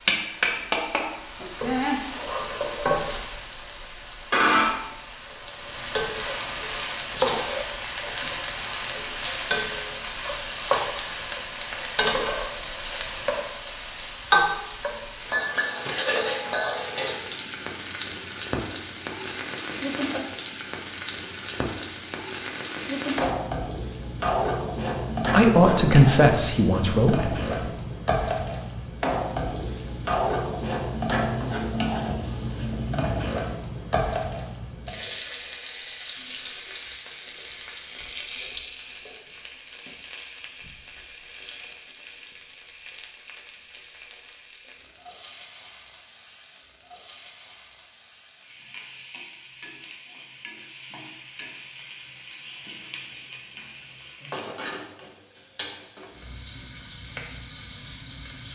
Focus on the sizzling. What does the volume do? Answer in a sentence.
The loudness of the sizzling goes down.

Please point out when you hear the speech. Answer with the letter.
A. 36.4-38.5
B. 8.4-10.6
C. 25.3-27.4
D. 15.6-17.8
C.